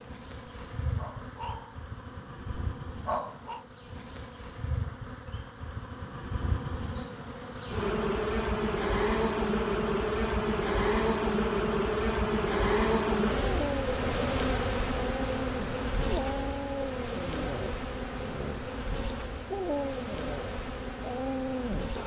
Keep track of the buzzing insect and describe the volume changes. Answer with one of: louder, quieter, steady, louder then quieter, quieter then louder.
louder then quieter.